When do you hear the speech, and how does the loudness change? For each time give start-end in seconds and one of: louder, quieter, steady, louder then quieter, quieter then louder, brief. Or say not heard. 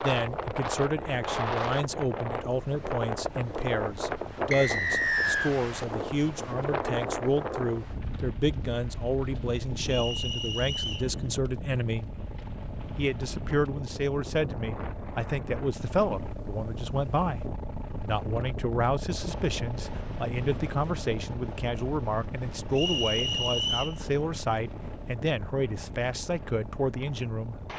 0.0-12.1 steady
12.9-27.6 steady.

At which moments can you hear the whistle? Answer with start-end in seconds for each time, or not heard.
4.5-5.5, 9.8-11.1, 22.8-23.9.